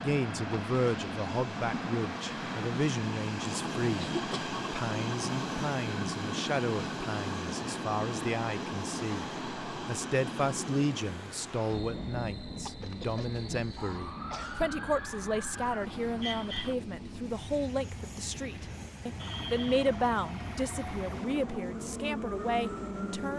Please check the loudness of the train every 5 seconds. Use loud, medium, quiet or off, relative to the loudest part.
loud, loud, medium, medium, loud.